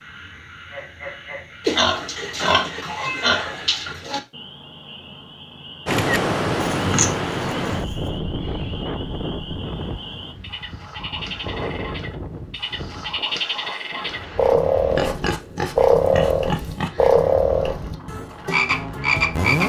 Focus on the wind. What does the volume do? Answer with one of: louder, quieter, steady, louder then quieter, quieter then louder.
quieter.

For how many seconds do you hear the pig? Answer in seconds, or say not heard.
6 s.